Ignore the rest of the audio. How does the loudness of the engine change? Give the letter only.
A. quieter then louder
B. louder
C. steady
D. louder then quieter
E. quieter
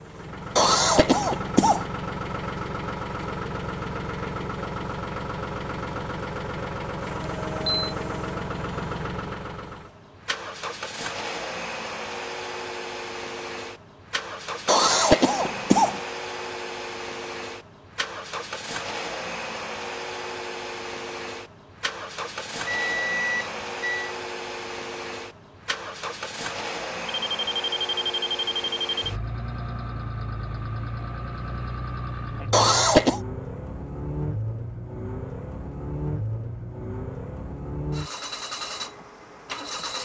C.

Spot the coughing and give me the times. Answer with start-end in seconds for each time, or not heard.
0.6-1.9, 14.7-16.0, 32.5-33.2.